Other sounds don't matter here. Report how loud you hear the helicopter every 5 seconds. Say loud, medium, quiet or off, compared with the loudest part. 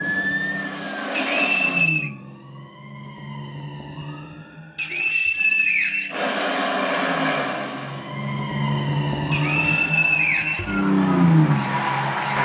loud, loud, off.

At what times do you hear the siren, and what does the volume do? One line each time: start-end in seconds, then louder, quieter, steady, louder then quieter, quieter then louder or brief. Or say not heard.
0.0-12.4 quieter then louder.